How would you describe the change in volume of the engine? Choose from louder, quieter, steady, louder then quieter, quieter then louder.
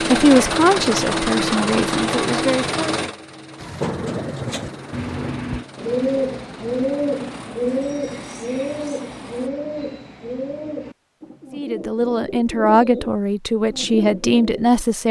quieter.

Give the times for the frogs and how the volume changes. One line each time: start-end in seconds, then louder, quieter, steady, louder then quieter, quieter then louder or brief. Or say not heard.
not heard.